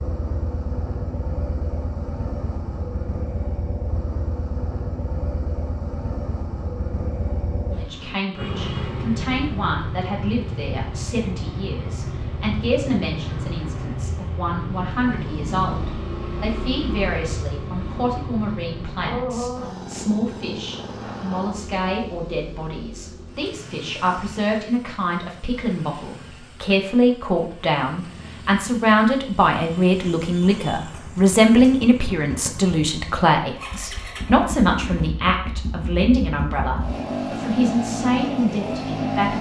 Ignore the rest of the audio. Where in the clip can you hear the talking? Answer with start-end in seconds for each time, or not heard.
7.8-39.3.